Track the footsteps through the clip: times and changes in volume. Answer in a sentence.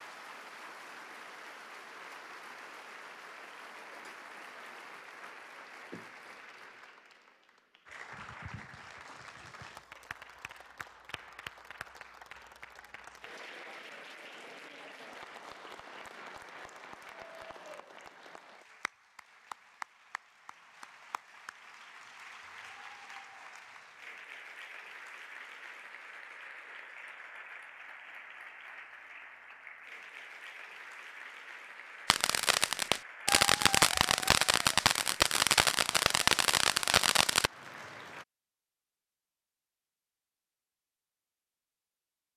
The footsteps can't be heard in this clip.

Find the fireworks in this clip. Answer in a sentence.
You can hear the fireworks from 32.1 to 37.5 s.